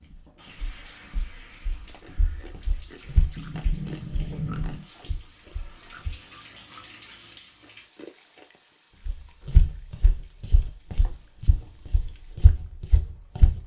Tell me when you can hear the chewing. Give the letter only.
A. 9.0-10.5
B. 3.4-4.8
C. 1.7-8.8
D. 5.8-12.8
C.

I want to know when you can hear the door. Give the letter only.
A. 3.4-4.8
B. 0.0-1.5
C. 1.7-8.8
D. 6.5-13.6
A.